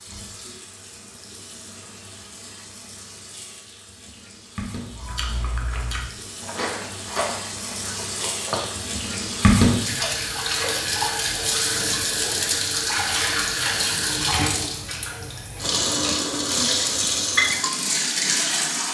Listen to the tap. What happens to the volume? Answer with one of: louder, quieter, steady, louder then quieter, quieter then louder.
louder.